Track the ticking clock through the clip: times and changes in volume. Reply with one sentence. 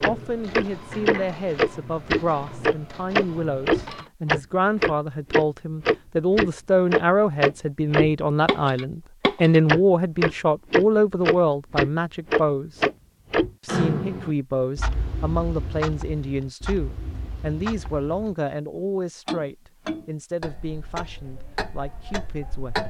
The ticking clock can be heard from 0.0 to 22.8 s, getting quieter.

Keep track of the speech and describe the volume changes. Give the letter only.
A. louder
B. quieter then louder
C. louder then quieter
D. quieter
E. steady
C.